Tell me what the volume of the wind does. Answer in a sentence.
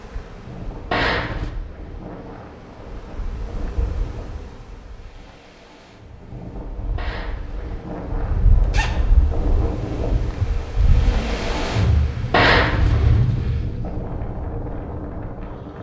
The volume of the wind goes up.